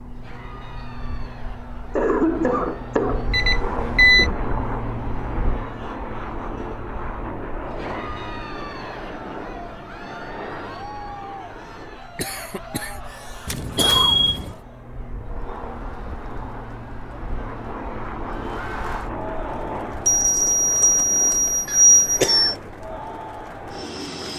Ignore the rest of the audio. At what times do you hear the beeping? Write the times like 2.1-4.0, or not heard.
3.3-4.3, 13.4-14.6, 20.1-22.4.